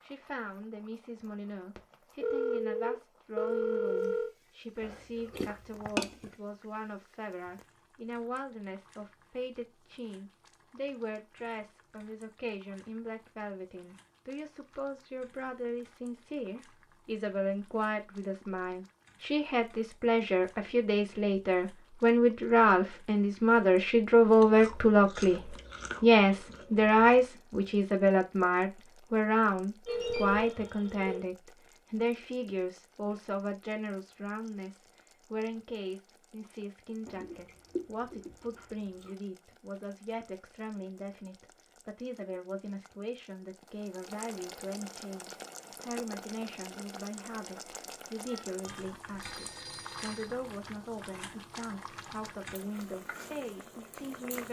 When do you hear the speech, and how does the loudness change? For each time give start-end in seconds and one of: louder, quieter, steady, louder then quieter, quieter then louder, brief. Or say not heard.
0.0-54.4 louder then quieter.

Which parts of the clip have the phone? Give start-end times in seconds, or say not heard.
1.8-4.3, 29.9-31.2, 48.2-50.4.